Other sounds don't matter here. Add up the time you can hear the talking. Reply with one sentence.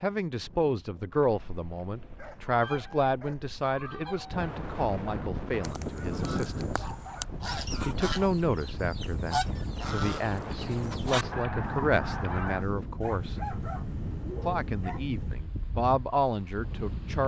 The talking can be heard for 15 seconds in total.